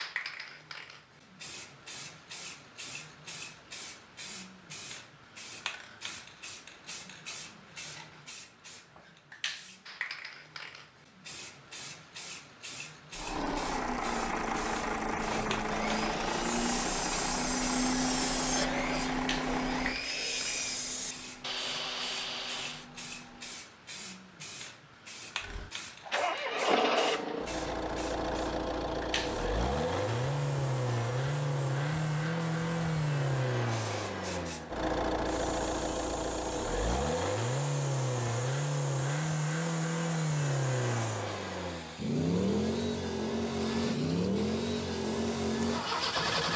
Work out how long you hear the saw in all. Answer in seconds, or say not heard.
8 s.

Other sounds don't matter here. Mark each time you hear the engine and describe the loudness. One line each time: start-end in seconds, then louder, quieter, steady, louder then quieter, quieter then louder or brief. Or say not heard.
13.2-23.6 quieter
25.4-46.5 steady.